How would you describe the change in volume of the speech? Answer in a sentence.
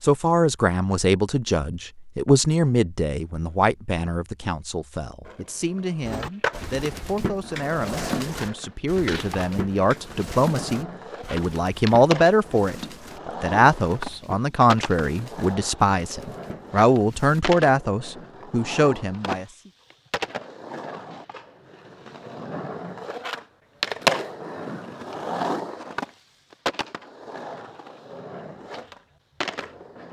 The volume of the speech goes down, then up.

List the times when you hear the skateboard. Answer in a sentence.
The skateboard can be heard from 5.2 to 30.0 s.